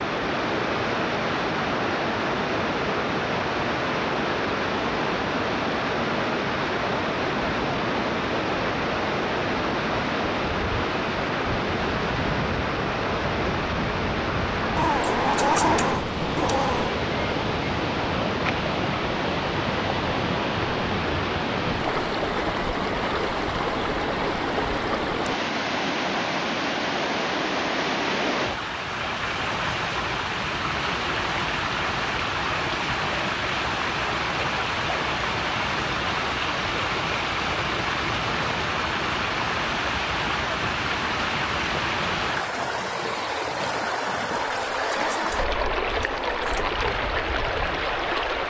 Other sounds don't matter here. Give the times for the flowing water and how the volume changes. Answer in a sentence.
The flowing water can be heard from 0.0 to 48.4 s, at a steady volume.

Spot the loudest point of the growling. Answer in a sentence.
The loudest moment of the growling is at 16 seconds.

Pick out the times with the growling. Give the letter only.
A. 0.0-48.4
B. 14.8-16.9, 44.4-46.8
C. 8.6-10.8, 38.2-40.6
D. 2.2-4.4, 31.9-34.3
B.